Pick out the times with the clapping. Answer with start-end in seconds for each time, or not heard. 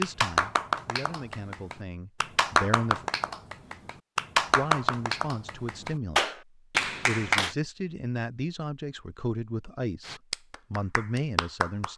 0.0-7.5, 10.1-11.9.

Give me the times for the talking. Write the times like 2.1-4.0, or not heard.
0.0-3.0, 4.5-11.9.